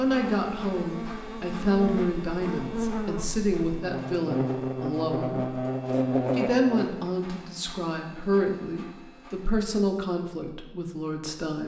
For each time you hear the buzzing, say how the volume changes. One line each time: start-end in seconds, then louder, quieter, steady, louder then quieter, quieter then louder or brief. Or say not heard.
0.0-6.9 louder.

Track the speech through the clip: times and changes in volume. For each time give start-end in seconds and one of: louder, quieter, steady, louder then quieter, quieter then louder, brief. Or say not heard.
0.0-11.6 steady.